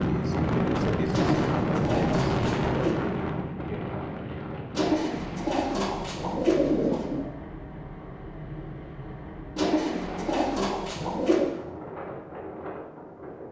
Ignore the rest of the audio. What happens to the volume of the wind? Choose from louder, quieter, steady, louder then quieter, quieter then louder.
quieter.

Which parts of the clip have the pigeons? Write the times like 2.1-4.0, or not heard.
1.1-3.0, 4.7-7.2, 9.6-11.4.